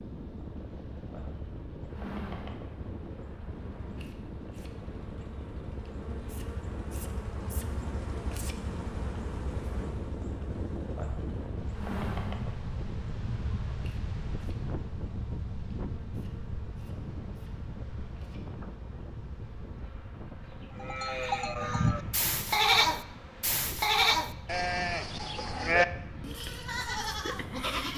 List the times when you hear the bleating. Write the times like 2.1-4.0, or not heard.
20.8-27.9.